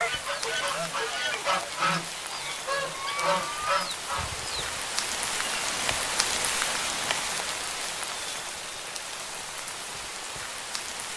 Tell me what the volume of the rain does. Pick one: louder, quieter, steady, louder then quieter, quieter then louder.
louder then quieter.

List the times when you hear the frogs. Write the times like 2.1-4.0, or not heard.
not heard.